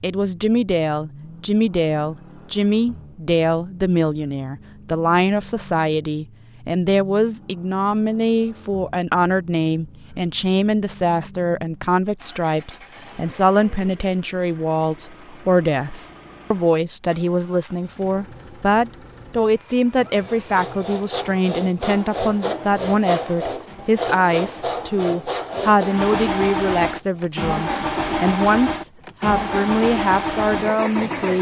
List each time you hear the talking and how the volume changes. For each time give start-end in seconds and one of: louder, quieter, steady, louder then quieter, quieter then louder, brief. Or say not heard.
0.0-31.3 steady.